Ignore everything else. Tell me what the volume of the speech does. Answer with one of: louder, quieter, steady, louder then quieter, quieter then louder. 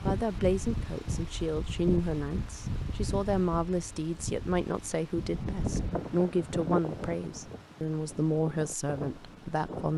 steady.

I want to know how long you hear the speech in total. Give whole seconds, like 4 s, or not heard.
10 s.